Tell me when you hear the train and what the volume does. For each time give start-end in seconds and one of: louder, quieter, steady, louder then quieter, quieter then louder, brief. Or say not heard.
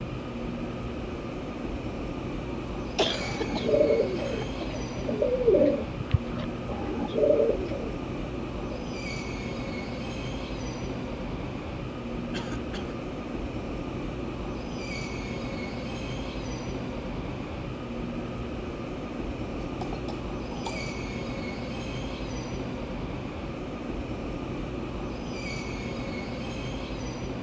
0.0-27.3 steady.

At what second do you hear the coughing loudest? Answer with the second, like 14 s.
3 s.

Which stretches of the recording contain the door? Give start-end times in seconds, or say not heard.
not heard.